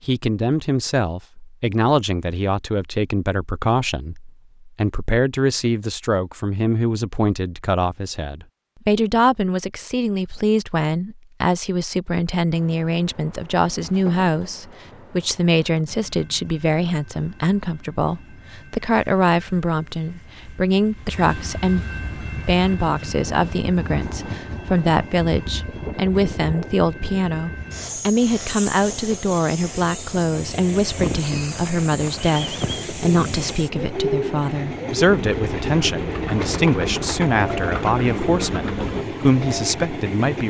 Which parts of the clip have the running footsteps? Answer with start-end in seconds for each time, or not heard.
not heard.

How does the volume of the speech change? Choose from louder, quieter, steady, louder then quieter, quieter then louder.
steady.